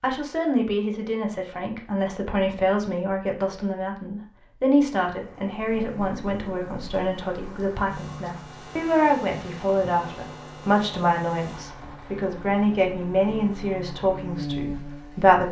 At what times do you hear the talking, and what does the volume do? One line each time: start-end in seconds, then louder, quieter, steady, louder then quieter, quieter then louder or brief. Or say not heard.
0.0-15.4 steady.